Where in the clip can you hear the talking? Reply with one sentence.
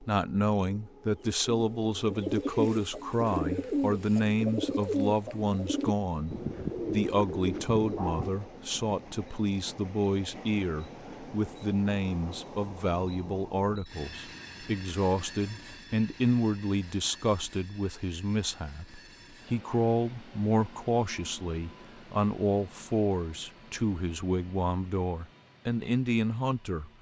The talking can be heard from 0.0 to 26.9 s.